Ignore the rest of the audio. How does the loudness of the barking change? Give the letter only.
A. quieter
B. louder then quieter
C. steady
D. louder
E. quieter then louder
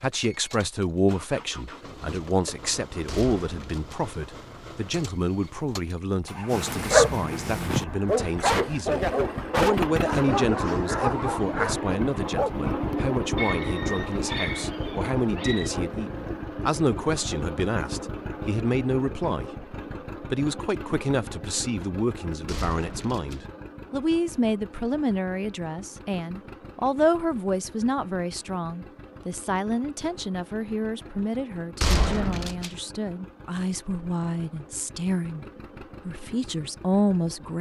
A.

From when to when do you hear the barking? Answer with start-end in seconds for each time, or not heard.
6.5-15.7.